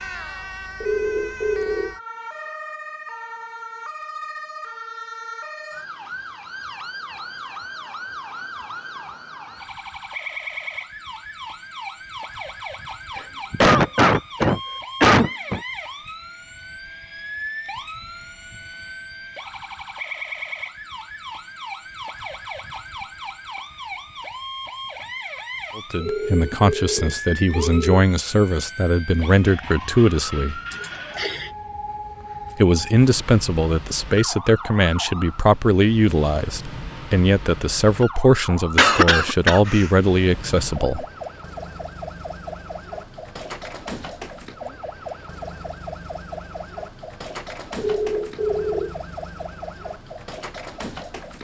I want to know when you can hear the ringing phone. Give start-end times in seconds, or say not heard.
0.8-1.9, 26.0-27.9, 47.8-49.0.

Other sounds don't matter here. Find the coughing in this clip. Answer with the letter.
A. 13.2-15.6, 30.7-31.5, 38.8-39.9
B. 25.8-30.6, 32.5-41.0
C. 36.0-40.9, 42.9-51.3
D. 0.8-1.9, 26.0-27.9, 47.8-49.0
A.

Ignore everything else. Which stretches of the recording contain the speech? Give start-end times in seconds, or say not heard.
25.8-30.6, 32.5-41.0.